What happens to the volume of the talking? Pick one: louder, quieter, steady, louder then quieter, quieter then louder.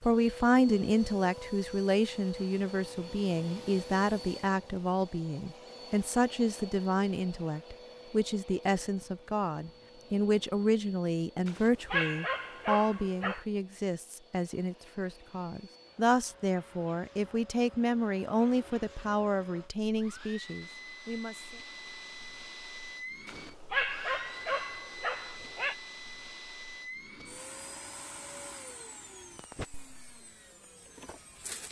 steady.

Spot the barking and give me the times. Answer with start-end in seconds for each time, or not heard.
11.4-13.4, 23.2-25.8.